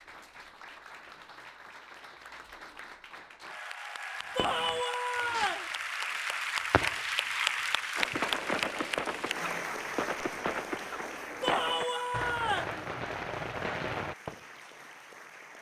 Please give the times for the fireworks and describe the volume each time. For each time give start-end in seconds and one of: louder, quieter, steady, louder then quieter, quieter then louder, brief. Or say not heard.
4.3-14.4 louder.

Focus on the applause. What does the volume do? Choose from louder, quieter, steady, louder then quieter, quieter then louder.
louder then quieter.